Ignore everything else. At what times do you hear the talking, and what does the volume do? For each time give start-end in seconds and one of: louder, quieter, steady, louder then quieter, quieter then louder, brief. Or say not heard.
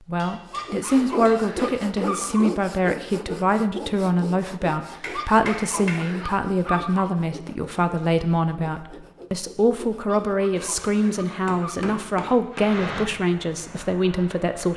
0.1-14.7 steady.